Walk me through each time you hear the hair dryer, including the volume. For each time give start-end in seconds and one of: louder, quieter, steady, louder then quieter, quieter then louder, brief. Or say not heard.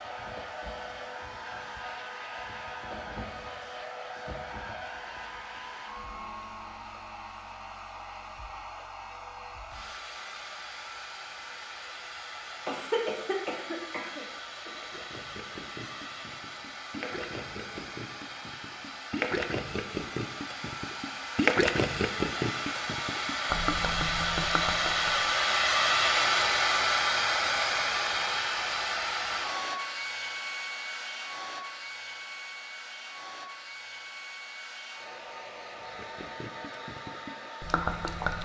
0.0-38.4 louder then quieter.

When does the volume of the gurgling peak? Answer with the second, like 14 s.
22 s.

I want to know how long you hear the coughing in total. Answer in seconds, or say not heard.
2 s.